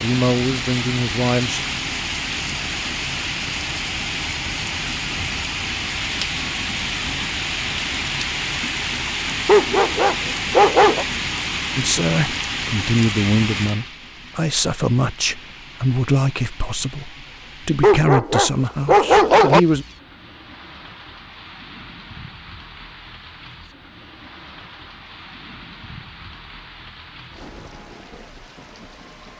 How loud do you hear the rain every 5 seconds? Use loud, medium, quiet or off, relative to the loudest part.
loud, loud, loud, quiet, quiet, quiet.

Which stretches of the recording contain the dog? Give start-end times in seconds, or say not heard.
9.4-11.1, 17.8-19.6.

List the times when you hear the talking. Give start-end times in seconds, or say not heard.
0.0-1.6, 11.8-19.9.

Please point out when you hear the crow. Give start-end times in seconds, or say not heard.
not heard.